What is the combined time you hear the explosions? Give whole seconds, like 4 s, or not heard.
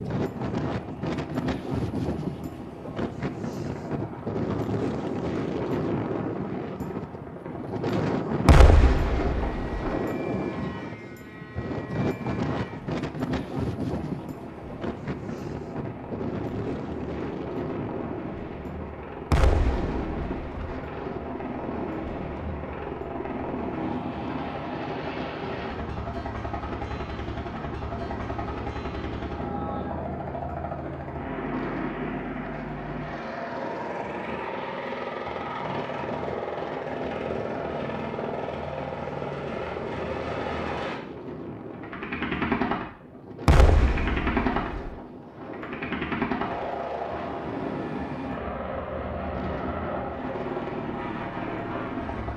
4 s.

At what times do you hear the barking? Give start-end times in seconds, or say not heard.
not heard.